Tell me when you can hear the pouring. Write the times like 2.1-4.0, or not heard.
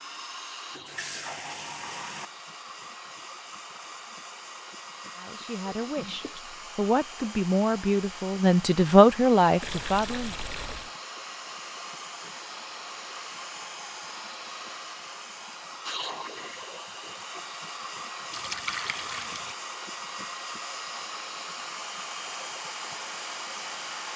0.7-2.3, 9.6-10.9, 18.3-19.6.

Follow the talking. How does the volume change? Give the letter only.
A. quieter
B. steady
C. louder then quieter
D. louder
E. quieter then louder
D.